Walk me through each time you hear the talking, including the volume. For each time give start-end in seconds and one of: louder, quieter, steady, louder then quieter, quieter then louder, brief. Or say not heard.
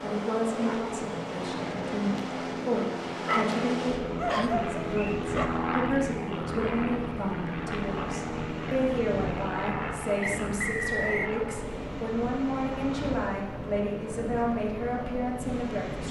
0.0-16.0 steady.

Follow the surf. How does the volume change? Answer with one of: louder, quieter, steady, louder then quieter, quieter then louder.
steady.